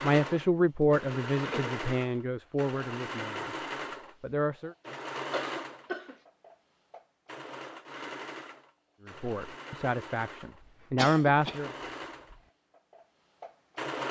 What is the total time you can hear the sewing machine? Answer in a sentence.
You can hear the sewing machine for 14 seconds altogether.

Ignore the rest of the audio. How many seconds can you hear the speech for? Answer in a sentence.
The speech can be heard for 7 seconds in total.